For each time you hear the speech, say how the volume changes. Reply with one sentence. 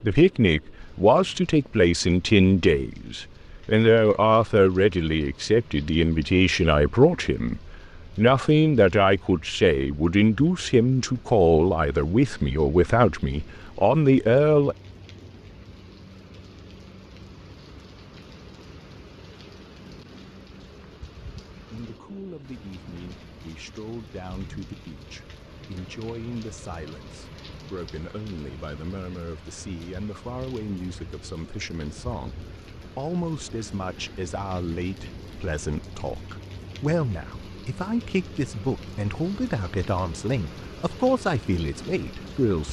You can hear the speech from 0.0 to 14.8 s, at a steady volume; and from 21.7 to 42.6 s, getting louder.